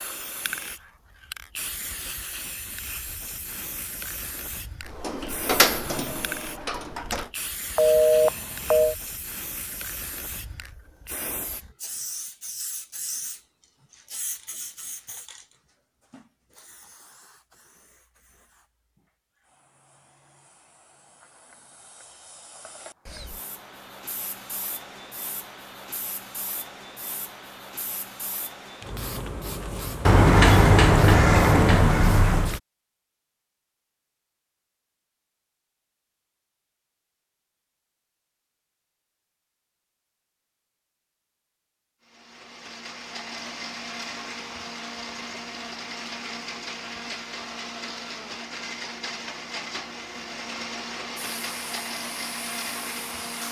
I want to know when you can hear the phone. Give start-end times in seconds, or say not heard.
7.8-8.9.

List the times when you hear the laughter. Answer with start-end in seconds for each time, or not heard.
not heard.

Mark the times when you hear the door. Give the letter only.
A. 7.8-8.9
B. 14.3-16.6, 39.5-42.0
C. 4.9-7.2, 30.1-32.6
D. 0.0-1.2
C.